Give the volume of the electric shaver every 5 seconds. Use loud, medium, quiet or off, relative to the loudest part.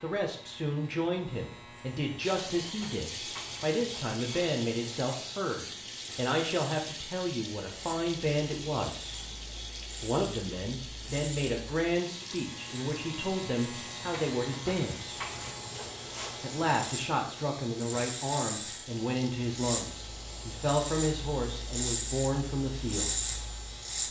quiet, quiet, medium, loud, loud.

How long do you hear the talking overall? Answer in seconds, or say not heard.
21 s.